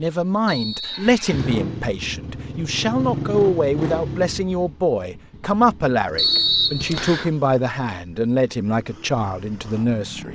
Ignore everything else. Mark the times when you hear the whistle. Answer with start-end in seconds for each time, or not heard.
0.5-1.6, 6.2-7.3.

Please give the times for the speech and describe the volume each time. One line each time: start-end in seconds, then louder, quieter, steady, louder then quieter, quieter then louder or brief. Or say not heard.
0.0-10.3 steady.